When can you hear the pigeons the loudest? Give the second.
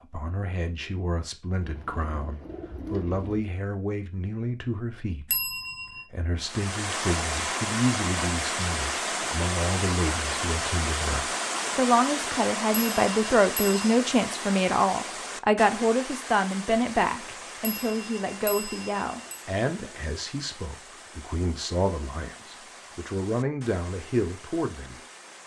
3 s.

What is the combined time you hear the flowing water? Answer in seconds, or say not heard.
19 s.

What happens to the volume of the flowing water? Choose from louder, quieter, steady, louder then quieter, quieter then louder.
quieter.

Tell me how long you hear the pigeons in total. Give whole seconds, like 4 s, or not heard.
2 s.